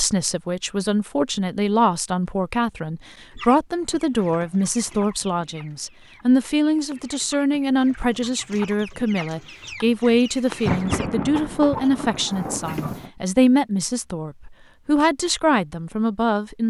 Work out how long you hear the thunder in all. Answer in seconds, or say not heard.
3 s.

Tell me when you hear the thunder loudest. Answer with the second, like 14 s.
11 s.